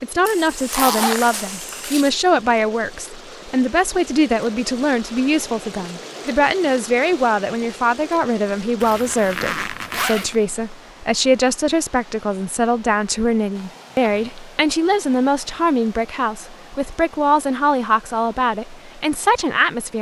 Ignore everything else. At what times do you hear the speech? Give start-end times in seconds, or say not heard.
0.0-19.9.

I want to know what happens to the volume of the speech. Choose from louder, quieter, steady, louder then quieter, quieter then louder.
steady.